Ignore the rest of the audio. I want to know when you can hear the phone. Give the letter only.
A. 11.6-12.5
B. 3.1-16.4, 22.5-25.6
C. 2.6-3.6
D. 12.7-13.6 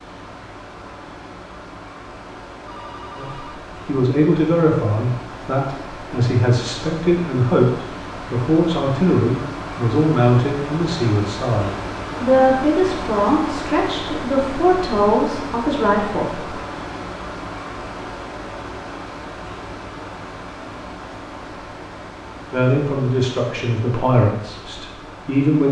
C.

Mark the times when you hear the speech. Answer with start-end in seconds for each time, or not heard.
3.1-16.4, 22.5-25.6.